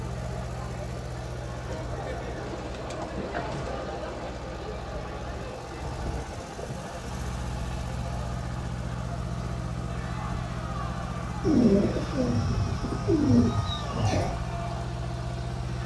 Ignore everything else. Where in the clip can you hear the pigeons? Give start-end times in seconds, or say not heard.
1.6-3.9, 11.4-14.3.